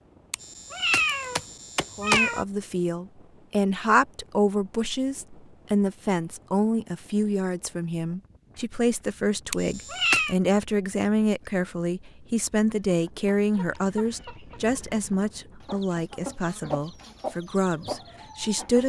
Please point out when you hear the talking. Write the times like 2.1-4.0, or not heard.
1.9-18.8.